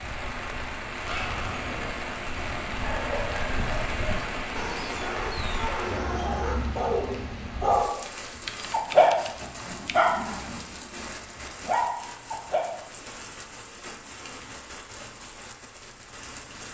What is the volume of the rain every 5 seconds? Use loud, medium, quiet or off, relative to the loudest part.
loud, loud, medium, medium.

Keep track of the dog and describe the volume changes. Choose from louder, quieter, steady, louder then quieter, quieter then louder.
louder then quieter.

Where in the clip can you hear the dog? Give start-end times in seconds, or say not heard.
0.9-12.7.